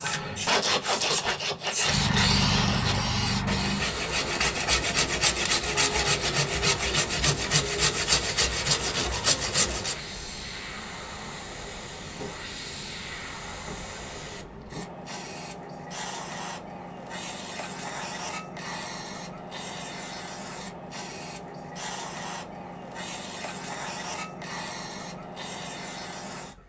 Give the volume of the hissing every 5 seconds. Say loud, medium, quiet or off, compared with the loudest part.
loud, medium, medium, medium, medium, medium.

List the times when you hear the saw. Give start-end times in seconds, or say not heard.
0.0-9.9.